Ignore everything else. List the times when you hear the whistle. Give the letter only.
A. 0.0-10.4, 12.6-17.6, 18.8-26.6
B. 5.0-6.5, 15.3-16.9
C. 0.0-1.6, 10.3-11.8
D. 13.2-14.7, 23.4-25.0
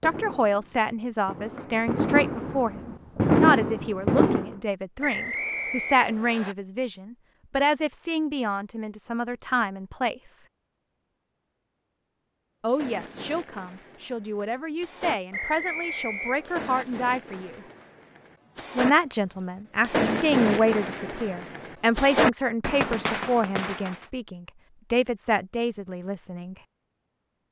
B.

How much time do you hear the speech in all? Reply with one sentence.
The speech can be heard for 23 seconds in total.